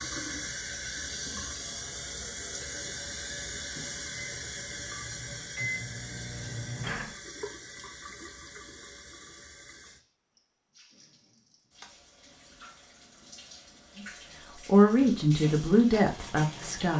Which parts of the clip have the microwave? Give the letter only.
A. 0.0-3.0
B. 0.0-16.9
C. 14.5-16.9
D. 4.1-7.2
D.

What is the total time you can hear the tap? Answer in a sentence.
The tap can be heard for 17 seconds in total.